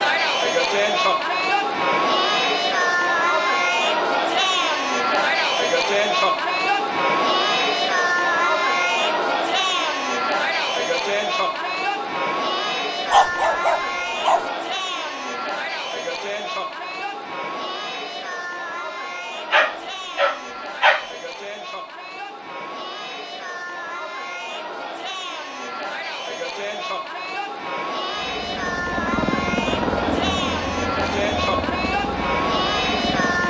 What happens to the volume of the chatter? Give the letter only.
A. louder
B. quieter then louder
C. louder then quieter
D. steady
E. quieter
B.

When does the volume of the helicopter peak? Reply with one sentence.
The loudest moment of the helicopter is at 30 seconds.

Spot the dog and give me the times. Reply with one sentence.
The dog can be heard from 13.1 to 14.4 s and from 19.5 to 21.1 s.